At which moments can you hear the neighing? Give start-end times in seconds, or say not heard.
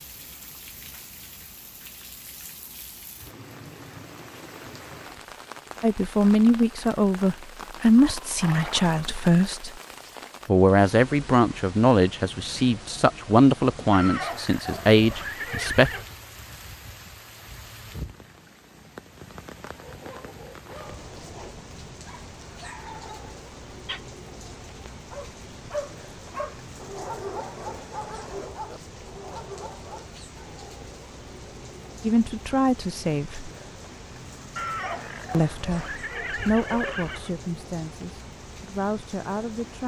8.1-9.0, 13.9-16.1, 34.5-37.4.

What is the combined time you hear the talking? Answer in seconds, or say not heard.
15 s.